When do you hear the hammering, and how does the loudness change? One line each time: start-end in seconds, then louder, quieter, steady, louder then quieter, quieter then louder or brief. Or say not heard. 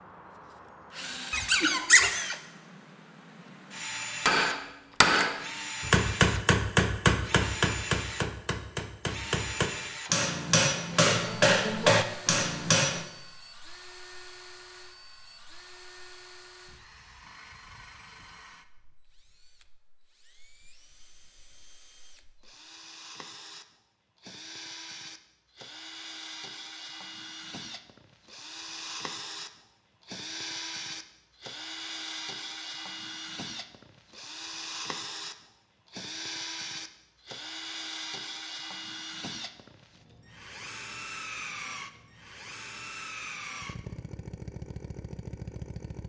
4.2-13.1 quieter then louder.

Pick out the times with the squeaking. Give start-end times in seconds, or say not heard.
1.3-2.1.